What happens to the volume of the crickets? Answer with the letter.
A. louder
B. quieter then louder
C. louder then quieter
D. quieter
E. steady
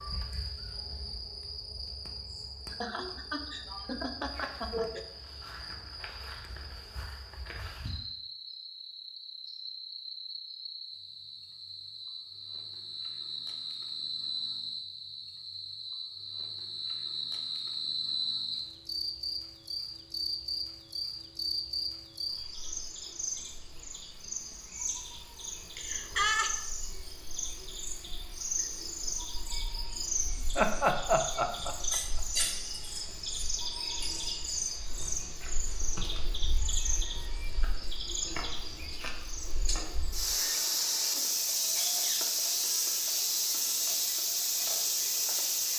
A.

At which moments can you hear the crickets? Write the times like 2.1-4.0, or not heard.
0.0-45.7.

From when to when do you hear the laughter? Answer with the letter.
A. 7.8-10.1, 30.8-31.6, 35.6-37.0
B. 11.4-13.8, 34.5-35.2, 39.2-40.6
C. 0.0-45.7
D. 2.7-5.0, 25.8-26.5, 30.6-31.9
D.